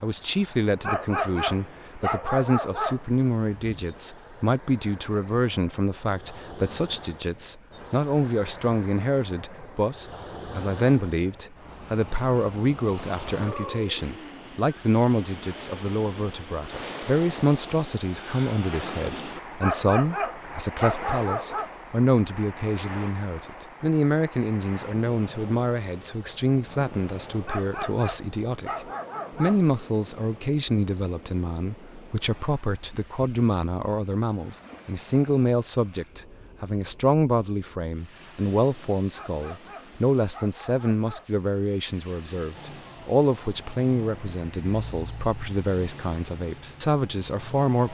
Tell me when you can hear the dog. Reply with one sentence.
You can hear the dog from 0.8 to 3.0 s, from 19.6 to 21.7 s, from 27.4 to 29.7 s and from 39.1 to 41.4 s.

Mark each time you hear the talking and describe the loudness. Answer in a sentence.
You can hear the talking from 0.0 to 47.8 s, at a steady volume.